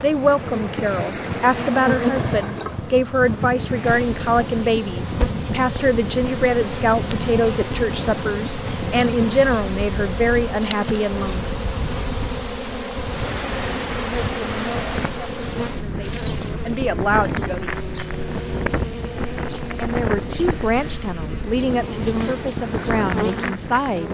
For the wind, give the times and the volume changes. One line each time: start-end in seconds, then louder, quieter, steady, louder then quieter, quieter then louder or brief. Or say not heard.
0.0-24.0 steady.